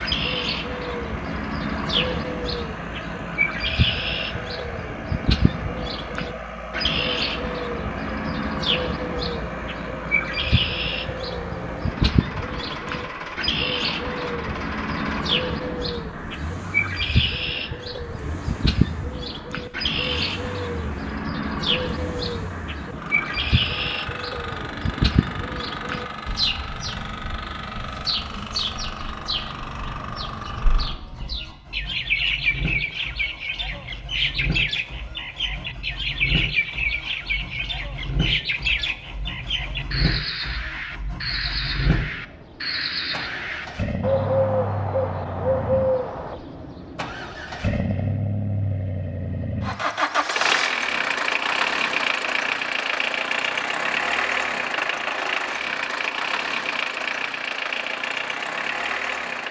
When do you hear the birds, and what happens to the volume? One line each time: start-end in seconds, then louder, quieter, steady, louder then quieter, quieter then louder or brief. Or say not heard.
0.0-46.4 steady.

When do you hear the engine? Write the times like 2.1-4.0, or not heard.
0.0-59.4.